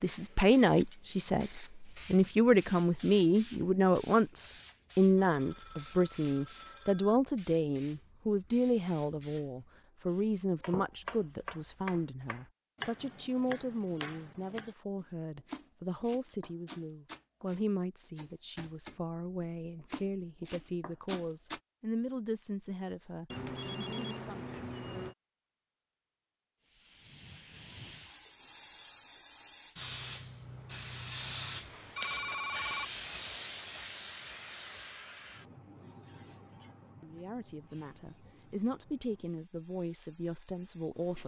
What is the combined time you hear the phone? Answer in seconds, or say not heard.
5 s.